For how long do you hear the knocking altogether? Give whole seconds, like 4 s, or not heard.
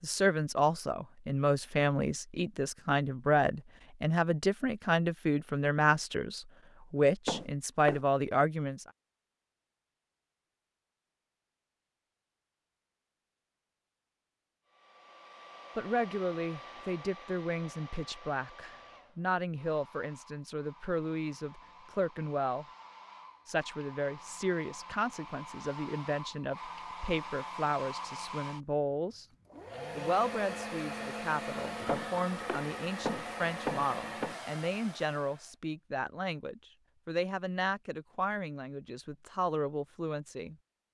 3 s.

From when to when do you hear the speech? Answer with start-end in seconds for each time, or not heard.
0.0-8.8, 15.8-22.6, 23.4-29.2, 29.9-40.5.